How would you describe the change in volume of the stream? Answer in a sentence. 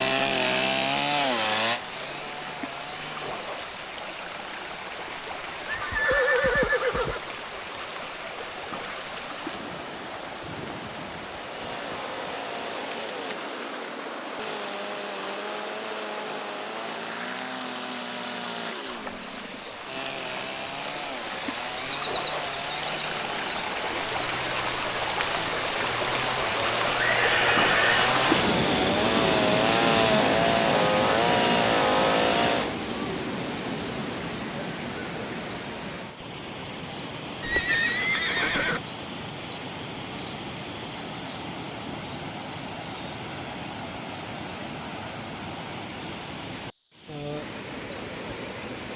The loudness of the stream goes up, then down.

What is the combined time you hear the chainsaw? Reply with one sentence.
The chainsaw can be heard for 25 seconds in total.